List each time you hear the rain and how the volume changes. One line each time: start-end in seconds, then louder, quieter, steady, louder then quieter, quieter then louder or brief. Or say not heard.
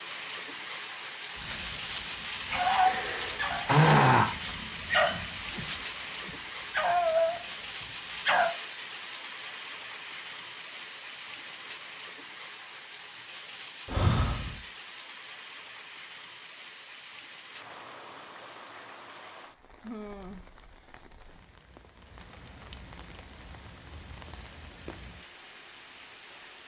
0.0-26.6 quieter.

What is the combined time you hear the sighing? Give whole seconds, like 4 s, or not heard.
2 s.